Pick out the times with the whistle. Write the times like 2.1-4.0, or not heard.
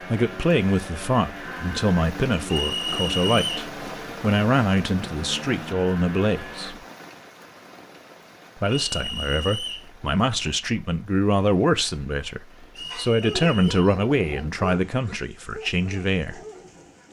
2.5-3.6, 8.8-9.9, 12.8-13.8.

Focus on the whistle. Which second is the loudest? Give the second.
3 s.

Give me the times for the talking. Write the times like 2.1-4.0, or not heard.
0.0-6.8, 8.6-16.4.